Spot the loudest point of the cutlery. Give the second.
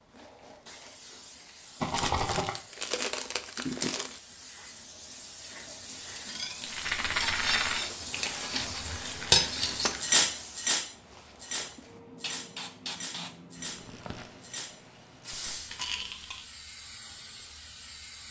9 s.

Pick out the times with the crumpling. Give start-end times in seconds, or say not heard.
1.9-4.2, 8.1-10.4, 13.6-14.3.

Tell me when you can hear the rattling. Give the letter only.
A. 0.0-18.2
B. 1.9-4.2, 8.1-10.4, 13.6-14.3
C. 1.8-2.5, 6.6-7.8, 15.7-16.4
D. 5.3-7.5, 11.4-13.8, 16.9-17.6
C.